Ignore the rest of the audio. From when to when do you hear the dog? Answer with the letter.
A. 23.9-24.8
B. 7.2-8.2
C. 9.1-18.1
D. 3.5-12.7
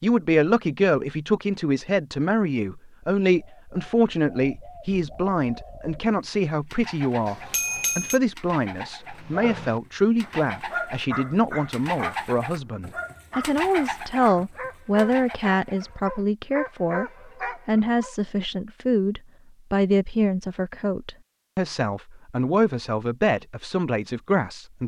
C.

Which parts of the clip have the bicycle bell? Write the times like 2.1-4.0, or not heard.
7.2-8.2.